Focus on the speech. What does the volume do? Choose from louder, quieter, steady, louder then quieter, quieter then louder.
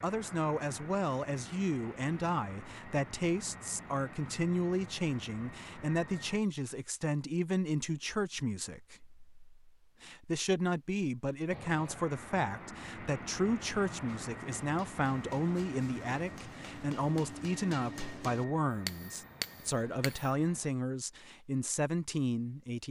steady.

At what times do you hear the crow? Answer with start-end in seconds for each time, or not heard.
not heard.